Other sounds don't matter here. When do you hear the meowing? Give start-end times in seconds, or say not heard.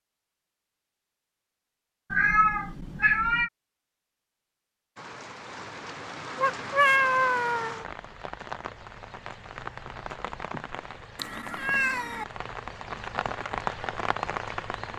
2.1-3.5, 6.3-7.8, 11.2-12.2.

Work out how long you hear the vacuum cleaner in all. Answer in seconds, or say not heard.
not heard.